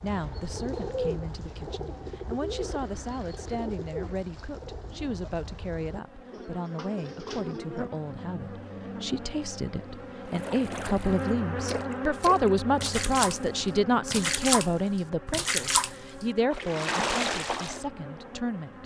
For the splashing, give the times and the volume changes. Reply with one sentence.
You can hear the splashing from 10.2 to 17.8 s, getting louder.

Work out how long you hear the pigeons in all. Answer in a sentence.
The pigeons can be heard for 8 seconds in total.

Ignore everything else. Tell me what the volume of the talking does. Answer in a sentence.
The loudness of the talking goes up, then down.